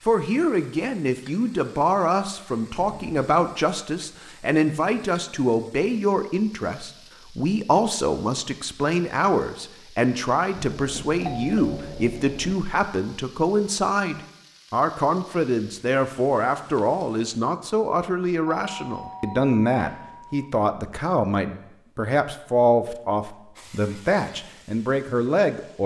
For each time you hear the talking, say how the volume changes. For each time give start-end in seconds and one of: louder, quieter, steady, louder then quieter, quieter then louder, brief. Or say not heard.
0.1-25.8 steady.